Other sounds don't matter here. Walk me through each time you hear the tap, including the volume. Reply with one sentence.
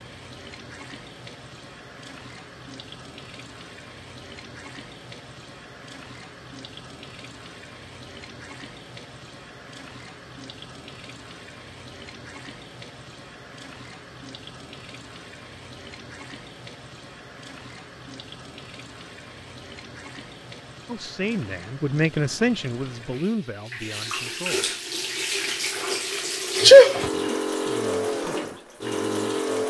The tap can be heard from 0.0 to 29.6 s, getting louder.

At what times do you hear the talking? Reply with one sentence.
The talking can be heard from 20.9 to 24.8 s and from 27.1 to 29.6 s.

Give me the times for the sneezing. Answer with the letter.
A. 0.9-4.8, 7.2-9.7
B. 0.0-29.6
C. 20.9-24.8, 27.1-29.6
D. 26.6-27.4
D.